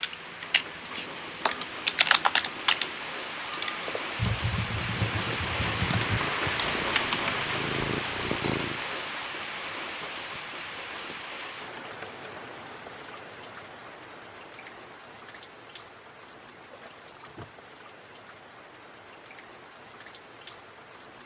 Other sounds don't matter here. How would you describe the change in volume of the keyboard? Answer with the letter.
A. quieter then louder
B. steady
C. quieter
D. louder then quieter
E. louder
D.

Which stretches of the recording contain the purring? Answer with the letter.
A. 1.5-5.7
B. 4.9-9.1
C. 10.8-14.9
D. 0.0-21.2
B.